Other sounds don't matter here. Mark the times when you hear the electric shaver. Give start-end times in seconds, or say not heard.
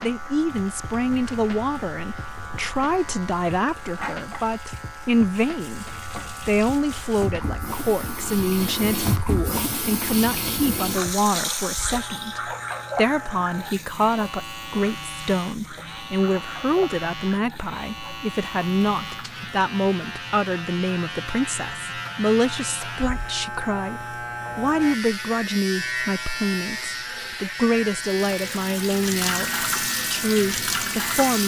0.0-31.4.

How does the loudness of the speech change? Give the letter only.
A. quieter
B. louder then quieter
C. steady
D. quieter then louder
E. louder
C.